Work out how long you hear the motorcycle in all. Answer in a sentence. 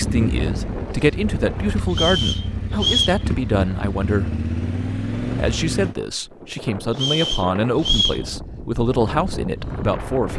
You can hear the motorcycle for 6 seconds altogether.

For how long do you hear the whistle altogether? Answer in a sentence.
You can hear the whistle for 3 seconds altogether.